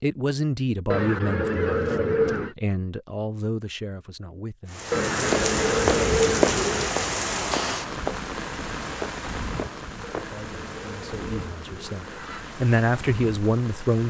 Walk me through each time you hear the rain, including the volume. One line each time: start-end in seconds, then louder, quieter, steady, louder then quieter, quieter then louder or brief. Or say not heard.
4.7-14.0 quieter.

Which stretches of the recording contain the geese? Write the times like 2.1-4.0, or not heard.
0.9-2.5, 4.9-7.0, 10.2-12.4.